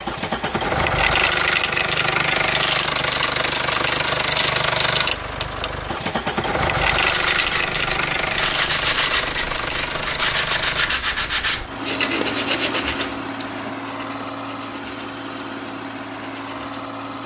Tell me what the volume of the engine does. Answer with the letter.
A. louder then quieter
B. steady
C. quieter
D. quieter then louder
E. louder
C.